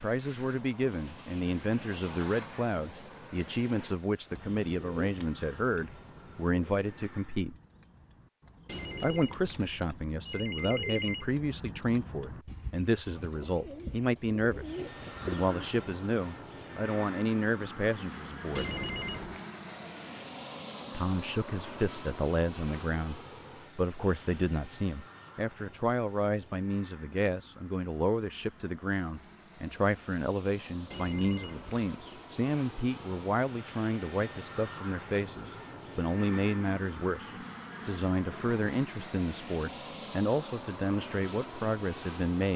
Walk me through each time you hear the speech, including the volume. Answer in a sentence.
The speech can be heard from 0.0 to 7.5 s, at a steady volume; from 9.0 to 18.7 s, at a steady volume; and from 20.9 to 42.5 s, at a steady volume.